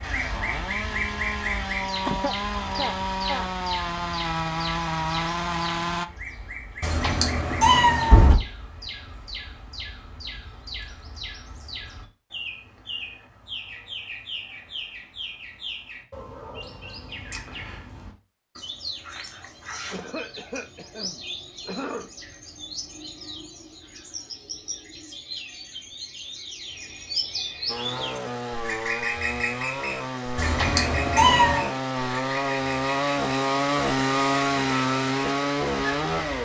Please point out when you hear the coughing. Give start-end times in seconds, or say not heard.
2.0-3.5, 19.9-22.1.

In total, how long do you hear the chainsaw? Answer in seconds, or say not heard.
15 s.